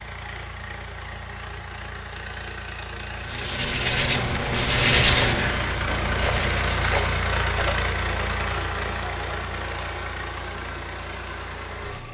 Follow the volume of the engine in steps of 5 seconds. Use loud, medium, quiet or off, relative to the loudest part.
medium, loud, medium.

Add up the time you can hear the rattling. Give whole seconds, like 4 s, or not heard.
2 s.